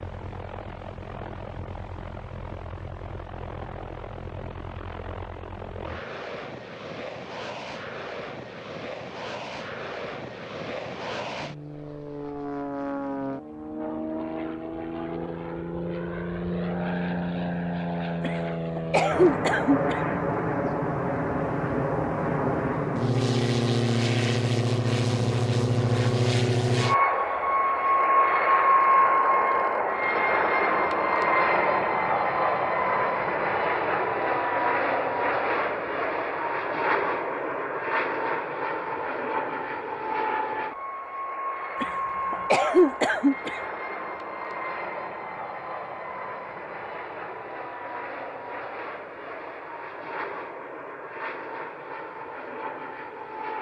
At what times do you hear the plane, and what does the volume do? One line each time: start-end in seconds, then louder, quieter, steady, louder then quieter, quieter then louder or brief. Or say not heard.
0.0-53.5 louder then quieter.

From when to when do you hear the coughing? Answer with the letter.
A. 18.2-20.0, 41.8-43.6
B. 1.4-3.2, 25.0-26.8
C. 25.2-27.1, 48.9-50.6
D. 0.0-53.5
A.